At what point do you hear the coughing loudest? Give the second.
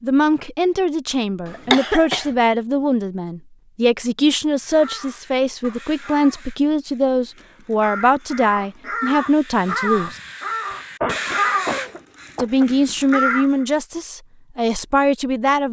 2 s.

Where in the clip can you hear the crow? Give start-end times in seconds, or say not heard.
4.5-13.7.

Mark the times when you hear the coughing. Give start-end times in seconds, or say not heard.
1.4-2.3, 10.4-12.7.